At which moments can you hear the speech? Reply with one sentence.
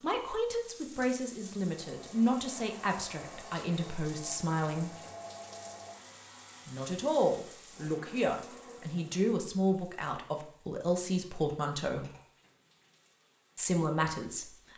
You can hear the speech from 0.0 to 5.0 s, from 6.7 to 12.1 s and from 13.6 to 14.6 s.